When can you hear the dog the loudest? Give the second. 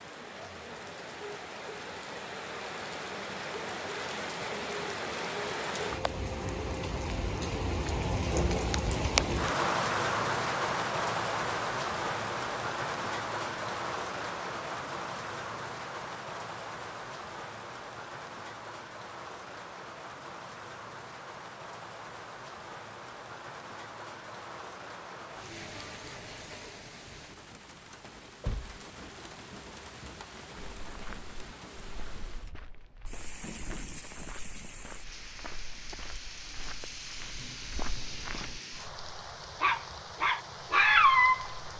41 s.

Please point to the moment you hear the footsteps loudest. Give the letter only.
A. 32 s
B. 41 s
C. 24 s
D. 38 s
D.